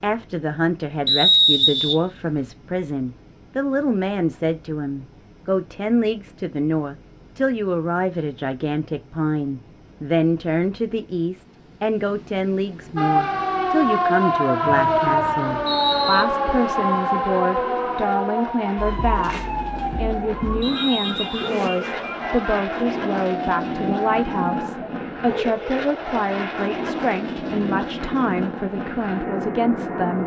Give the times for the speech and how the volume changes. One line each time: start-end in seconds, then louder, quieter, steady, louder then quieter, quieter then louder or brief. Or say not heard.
0.0-30.2 steady.